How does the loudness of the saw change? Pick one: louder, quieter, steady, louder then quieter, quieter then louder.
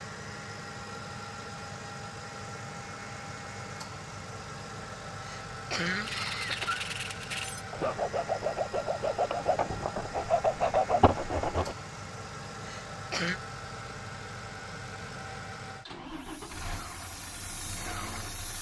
louder.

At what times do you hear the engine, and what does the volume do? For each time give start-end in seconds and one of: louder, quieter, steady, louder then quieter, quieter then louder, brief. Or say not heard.
0.0-18.5 steady.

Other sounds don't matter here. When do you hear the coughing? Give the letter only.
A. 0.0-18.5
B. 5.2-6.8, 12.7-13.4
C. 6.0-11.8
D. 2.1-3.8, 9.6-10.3
B.